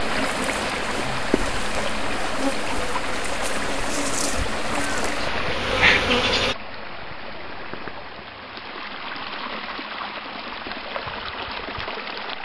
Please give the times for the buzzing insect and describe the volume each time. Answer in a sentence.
The buzzing insect can be heard from 0.0 to 6.5 s, getting louder.